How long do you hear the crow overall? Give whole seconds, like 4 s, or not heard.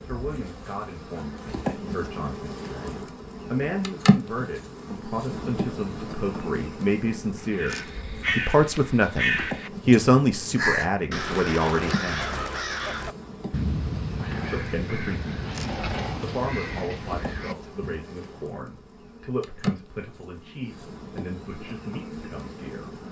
11 s.